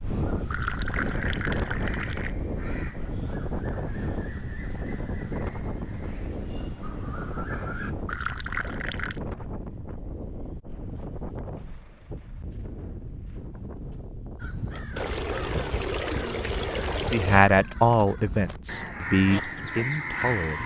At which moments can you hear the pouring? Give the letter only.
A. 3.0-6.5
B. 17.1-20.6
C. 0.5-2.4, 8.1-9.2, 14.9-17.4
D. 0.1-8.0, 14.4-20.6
C.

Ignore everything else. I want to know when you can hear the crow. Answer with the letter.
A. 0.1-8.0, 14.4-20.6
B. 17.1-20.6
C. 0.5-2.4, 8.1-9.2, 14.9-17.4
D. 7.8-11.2
A.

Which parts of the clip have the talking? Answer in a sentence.
You can hear the talking from 17.1 to 20.6 s.